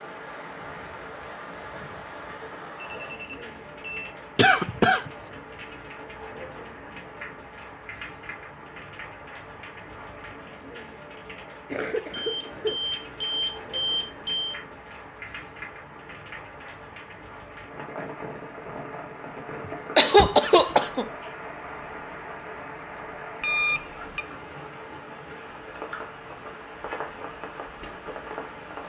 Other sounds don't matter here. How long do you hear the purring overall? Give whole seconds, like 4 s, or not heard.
not heard.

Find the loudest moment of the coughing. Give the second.
20 s.